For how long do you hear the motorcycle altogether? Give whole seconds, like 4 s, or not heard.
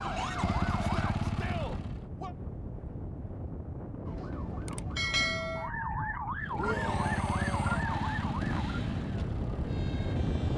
6 s.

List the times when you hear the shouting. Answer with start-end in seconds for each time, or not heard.
0.8-2.4, 6.5-7.8.